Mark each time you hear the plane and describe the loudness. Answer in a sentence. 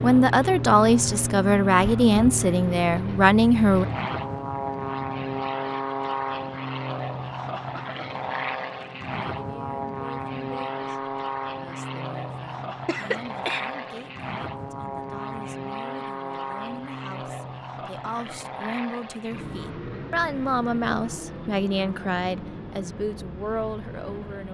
The plane can be heard from 0.0 to 24.4 s, getting quieter.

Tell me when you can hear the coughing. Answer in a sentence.
The coughing can be heard from 12.8 to 13.7 s.